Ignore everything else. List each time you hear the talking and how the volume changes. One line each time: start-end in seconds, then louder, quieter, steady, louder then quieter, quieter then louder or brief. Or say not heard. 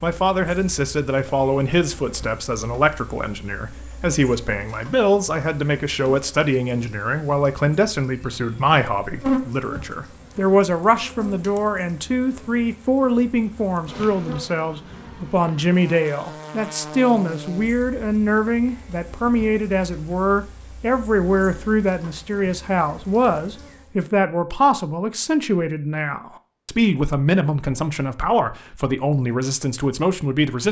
0.0-30.6 steady.